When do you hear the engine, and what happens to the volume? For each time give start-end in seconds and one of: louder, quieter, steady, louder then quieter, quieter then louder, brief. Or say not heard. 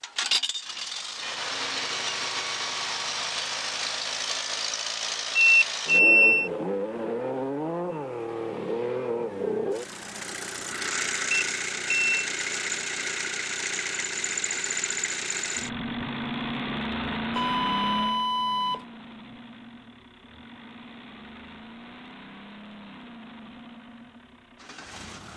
0.0-25.3 quieter.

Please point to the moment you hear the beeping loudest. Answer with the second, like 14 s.
6 s.